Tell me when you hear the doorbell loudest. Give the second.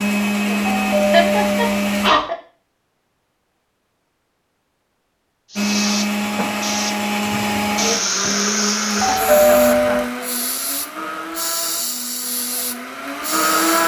9 s.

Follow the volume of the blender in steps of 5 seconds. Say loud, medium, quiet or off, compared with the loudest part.
loud, loud, medium.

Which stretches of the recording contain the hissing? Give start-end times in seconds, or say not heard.
5.5-13.8.